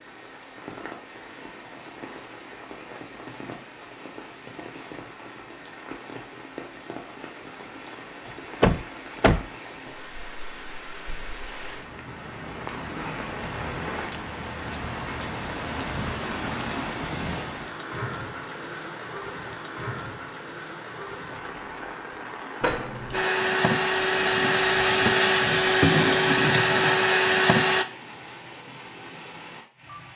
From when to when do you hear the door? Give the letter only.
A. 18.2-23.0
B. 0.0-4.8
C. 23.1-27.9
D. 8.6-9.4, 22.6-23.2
D.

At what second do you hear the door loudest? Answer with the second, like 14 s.
9 s.